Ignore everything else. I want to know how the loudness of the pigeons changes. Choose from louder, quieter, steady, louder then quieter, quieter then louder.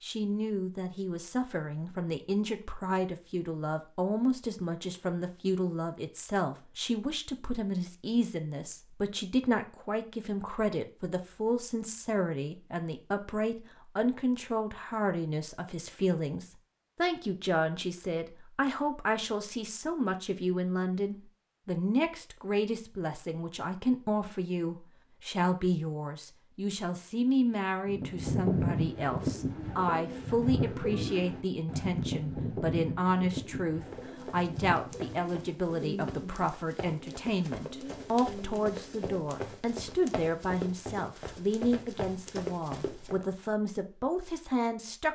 quieter.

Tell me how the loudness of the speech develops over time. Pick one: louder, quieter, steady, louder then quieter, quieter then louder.
steady.